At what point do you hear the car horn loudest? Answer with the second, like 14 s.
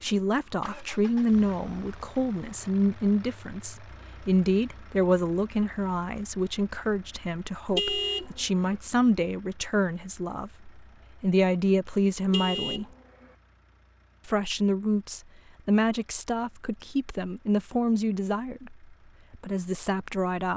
8 s.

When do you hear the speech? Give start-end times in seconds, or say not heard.
0.0-12.8, 14.2-20.5.